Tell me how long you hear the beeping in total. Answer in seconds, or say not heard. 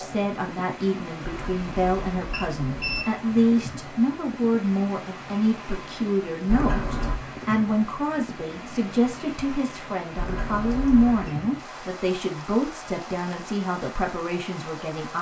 4 s.